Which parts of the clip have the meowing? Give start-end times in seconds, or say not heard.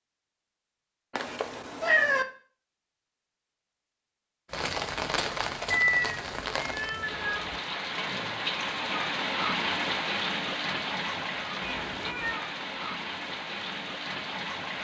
1.1-2.2, 5.7-7.6, 11.6-12.4.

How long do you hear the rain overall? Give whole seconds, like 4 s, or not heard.
10 s.